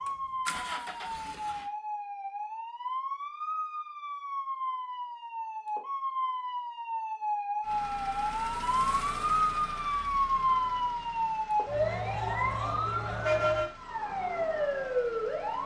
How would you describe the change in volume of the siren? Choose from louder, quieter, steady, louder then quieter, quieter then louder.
louder.